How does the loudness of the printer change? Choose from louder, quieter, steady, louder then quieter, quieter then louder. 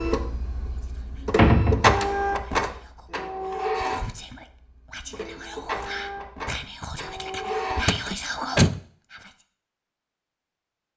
louder then quieter.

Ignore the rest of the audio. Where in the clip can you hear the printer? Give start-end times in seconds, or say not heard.
0.0-7.8.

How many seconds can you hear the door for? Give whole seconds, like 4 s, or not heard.
2 s.